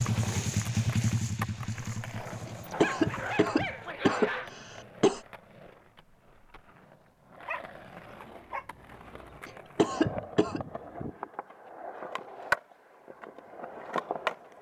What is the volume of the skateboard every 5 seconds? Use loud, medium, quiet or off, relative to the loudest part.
medium, quiet, loud.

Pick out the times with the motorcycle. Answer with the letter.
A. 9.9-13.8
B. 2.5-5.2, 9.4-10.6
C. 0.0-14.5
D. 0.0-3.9
D.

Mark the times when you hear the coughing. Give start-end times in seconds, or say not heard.
2.5-5.2, 9.4-10.6.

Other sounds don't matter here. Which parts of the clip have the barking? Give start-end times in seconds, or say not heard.
2.7-4.5, 7.5-9.3.